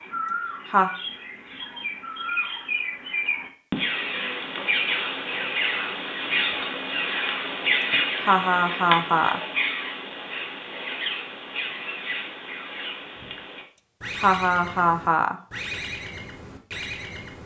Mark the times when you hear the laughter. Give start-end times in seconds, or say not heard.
0.2-0.9, 7.8-9.4, 13.8-15.3.